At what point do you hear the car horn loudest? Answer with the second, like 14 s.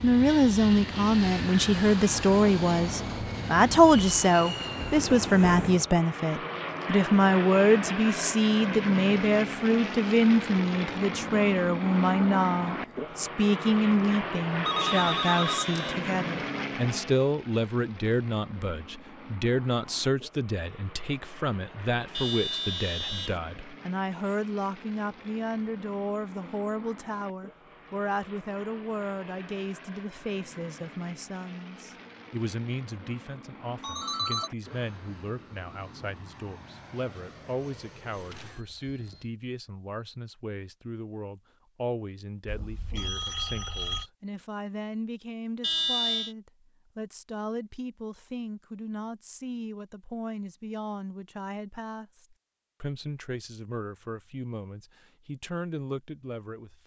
46 s.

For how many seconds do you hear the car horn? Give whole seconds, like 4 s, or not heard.
3 s.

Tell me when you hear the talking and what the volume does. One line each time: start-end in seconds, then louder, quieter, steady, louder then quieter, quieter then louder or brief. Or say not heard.
0.0-56.8 quieter.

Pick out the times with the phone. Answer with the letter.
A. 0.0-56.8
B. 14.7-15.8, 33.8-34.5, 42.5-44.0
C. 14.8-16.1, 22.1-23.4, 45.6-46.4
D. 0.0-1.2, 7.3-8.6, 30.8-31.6
B.